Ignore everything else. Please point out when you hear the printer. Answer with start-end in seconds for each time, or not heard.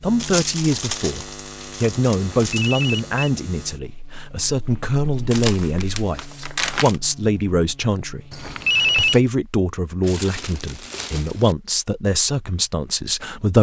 not heard.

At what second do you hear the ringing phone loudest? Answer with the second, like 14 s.
9 s.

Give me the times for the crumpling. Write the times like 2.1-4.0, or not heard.
0.1-2.7, 5.3-7.0, 10.0-11.6.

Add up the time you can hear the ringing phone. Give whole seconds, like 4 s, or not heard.
2 s.